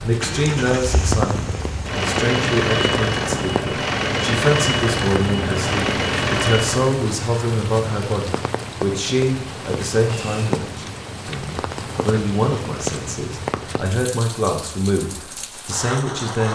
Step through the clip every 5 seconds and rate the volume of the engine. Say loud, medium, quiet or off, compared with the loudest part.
loud, loud, off, off.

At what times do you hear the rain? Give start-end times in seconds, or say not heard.
0.0-16.5.